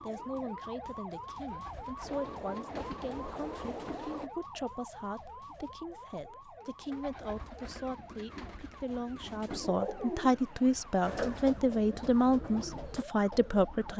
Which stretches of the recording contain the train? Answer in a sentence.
The train can be heard from 2.0 to 4.3 s.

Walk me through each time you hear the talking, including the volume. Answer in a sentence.
The talking can be heard from 0.0 to 13.9 s, getting louder.